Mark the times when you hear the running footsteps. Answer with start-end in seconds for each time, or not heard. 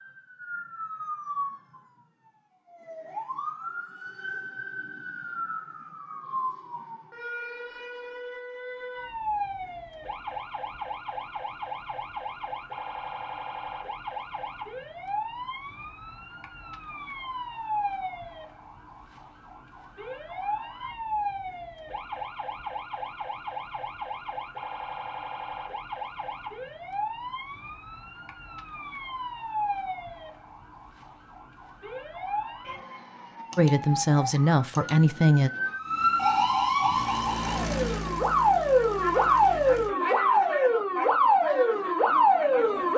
not heard.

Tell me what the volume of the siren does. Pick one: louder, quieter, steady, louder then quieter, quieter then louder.
louder.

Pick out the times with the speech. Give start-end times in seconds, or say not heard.
33.5-35.5.